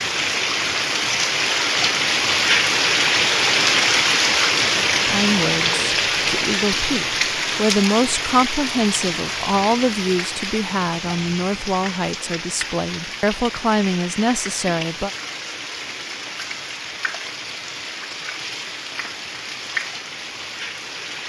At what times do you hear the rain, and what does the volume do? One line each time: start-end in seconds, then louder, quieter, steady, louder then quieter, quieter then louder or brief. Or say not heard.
0.0-21.2 quieter.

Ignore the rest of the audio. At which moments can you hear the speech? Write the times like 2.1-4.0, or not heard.
5.1-15.1.